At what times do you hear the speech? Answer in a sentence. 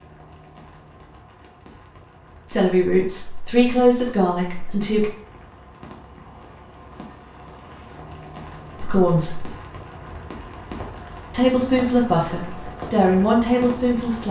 You can hear the speech from 2.5 to 5.1 s, from 8.8 to 9.4 s and from 11.3 to 14.2 s.